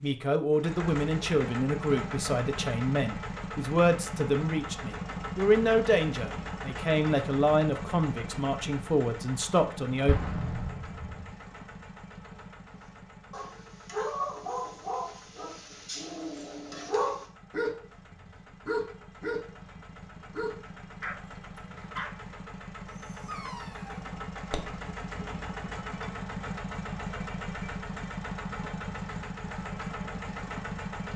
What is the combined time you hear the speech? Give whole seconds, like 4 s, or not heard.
10 s.